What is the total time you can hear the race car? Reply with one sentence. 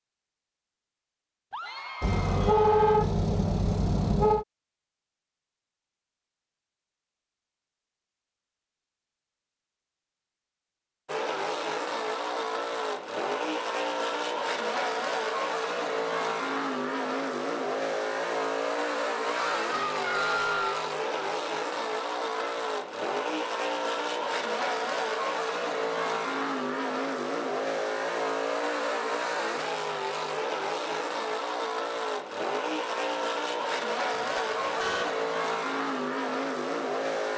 The race car can be heard for 26 seconds in total.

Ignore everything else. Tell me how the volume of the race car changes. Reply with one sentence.
The loudness of the race car stays about the same.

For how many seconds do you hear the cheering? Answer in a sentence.
The cheering can be heard for 3 seconds in total.